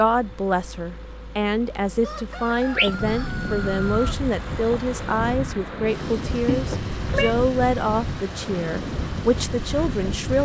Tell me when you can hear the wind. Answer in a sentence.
The wind can be heard from 3.0 to 10.4 s.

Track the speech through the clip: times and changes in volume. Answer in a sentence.
You can hear the speech from 0.0 to 10.4 s, at a steady volume.